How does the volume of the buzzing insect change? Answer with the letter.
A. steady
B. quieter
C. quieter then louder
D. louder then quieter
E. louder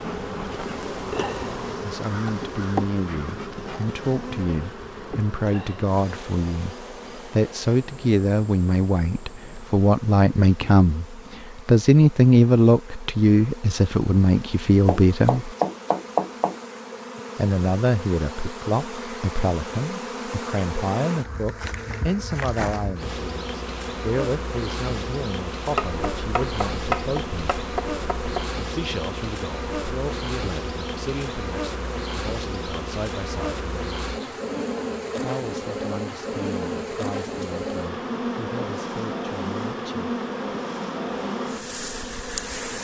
C.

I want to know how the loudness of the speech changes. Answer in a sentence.
The volume of the speech goes up, then down.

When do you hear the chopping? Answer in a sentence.
You can hear the chopping from 14.8 to 16.6 s and from 25.7 to 28.5 s.